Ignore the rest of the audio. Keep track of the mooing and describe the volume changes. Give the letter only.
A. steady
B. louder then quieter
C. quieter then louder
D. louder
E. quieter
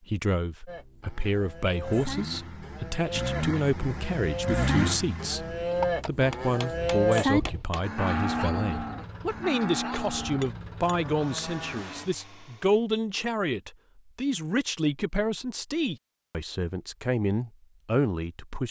B.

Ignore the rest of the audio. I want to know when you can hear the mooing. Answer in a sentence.
You can hear the mooing from 0.7 to 12.1 s.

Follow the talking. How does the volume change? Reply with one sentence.
The loudness of the talking stays about the same.